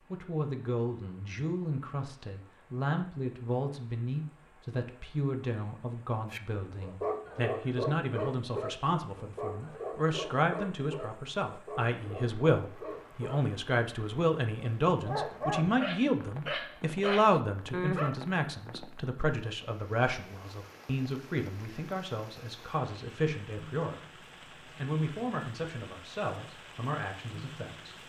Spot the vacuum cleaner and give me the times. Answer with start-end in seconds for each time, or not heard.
not heard.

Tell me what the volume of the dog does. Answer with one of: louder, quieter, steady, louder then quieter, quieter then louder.
quieter then louder.